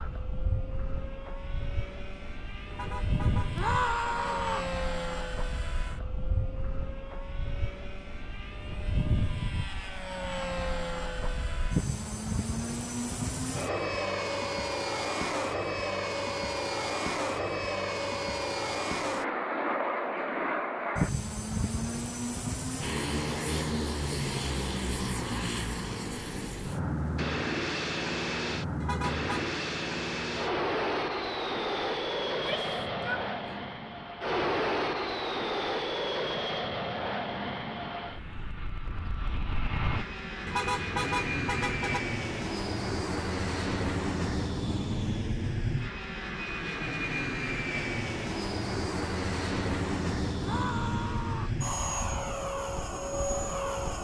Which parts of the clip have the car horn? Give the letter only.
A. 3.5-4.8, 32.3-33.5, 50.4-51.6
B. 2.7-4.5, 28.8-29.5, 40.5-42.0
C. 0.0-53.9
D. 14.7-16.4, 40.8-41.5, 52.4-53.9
B.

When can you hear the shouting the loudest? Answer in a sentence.
The loudest moment of the shouting is at 4 seconds.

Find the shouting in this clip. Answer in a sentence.
You can hear the shouting from 3.5 to 4.8 s, from 32.3 to 33.5 s and from 50.4 to 51.6 s.